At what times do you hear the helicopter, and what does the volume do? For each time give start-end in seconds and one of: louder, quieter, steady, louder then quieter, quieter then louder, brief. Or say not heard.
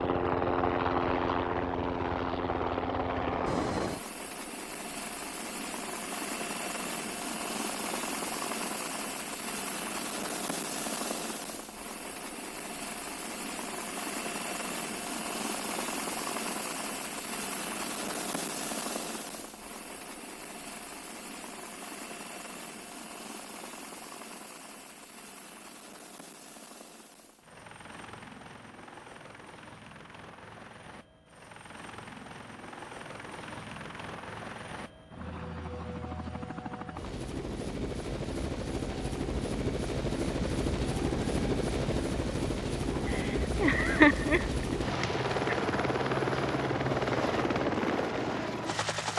0.0-49.1 quieter then louder.